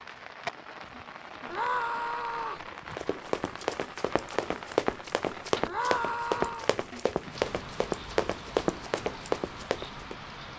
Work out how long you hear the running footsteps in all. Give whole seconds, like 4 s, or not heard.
7 s.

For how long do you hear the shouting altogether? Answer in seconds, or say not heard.
2 s.